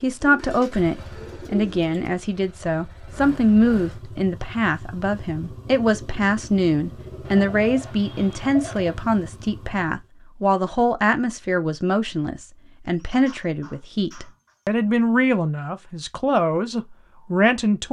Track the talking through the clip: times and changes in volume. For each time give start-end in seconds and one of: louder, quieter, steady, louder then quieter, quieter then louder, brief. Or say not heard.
0.0-17.8 steady.